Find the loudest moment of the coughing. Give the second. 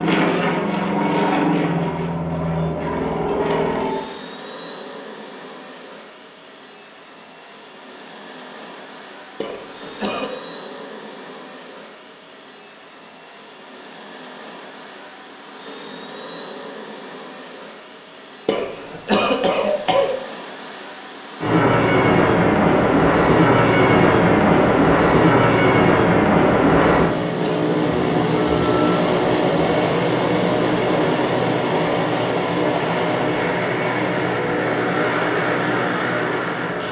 19 s.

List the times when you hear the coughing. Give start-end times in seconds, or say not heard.
9.4-10.3, 18.4-20.1, 26.8-27.6.